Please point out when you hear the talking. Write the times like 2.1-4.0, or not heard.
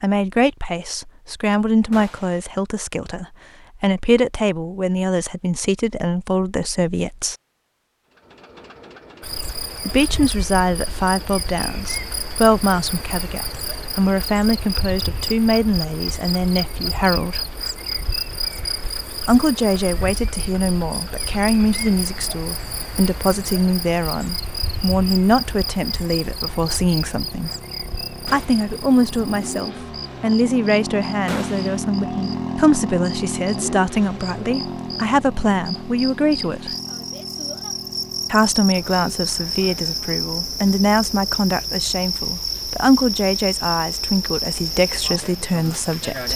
0.0-7.3, 9.8-17.4, 19.2-27.5, 28.3-36.8, 38.3-46.3.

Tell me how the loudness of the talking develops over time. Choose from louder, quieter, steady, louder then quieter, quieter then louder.
steady.